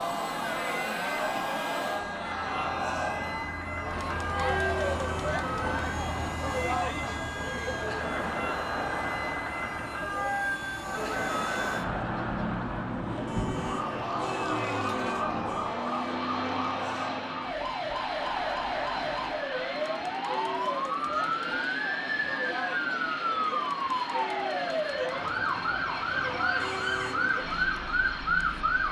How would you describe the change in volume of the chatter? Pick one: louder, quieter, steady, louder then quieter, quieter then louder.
quieter.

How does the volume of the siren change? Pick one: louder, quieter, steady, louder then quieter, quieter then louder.
louder.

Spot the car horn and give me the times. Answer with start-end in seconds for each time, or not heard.
4.8-5.3, 13.2-15.8, 26.6-27.4.